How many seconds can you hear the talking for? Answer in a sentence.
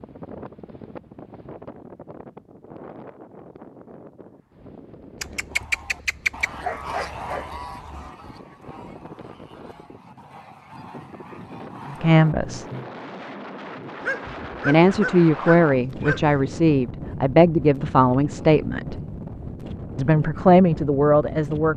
The talking can be heard for 7 seconds in total.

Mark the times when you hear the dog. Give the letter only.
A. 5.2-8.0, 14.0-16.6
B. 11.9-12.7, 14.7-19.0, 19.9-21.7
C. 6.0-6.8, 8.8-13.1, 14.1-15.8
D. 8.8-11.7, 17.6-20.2
A.